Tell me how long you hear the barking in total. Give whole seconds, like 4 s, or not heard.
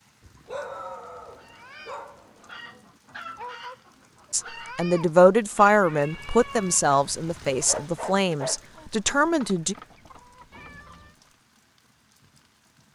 3 s.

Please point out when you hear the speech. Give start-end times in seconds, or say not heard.
4.3-9.8.